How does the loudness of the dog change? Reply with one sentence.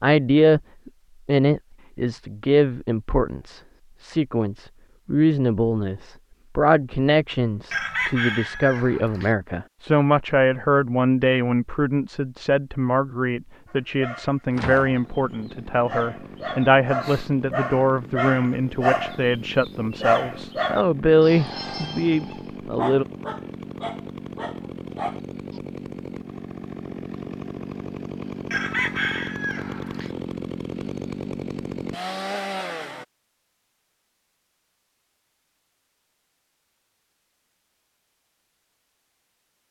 The volume of the dog goes up, then down.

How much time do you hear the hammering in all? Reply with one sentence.
You can't hear the hammering here.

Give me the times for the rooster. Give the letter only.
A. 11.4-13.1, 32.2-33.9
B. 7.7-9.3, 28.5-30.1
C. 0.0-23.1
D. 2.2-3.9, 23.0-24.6
B.